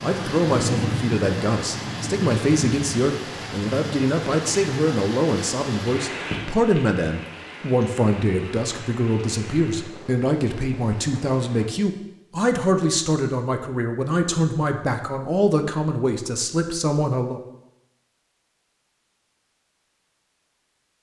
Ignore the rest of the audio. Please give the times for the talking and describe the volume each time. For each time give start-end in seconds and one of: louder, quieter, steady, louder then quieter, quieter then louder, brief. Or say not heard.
0.0-17.4 steady.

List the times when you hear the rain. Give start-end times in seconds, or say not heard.
0.0-11.7.